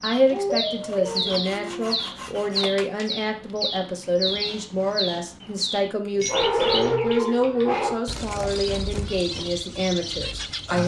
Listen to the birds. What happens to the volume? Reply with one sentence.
The volume of the birds stays about the same.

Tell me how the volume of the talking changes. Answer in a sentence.
The loudness of the talking stays about the same.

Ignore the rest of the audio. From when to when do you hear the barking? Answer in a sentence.
The barking can be heard from 0.3 to 1.9 s and from 6.0 to 8.0 s.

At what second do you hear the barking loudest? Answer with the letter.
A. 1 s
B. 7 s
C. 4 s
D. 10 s
B.